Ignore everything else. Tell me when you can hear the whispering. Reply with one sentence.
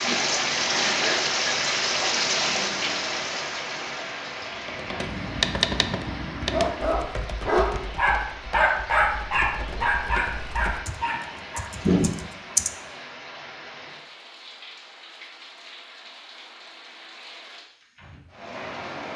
You can't hear the whispering here.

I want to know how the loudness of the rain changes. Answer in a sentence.
The volume of the rain goes down.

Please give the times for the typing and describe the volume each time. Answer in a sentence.
The typing can be heard from 4.3 to 12.7 s, getting quieter then louder.